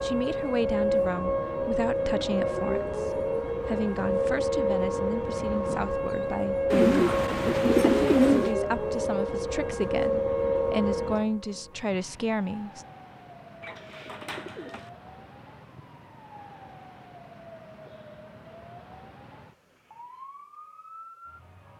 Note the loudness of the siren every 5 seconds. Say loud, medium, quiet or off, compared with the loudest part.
loud, loud, medium, quiet, quiet.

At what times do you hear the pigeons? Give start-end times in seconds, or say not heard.
6.7-8.6, 13.6-14.9.